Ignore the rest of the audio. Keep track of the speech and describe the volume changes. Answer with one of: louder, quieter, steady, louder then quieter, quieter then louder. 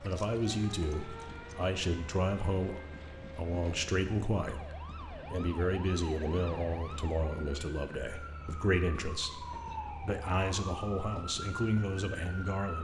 steady.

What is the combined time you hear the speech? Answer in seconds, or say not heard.
13 s.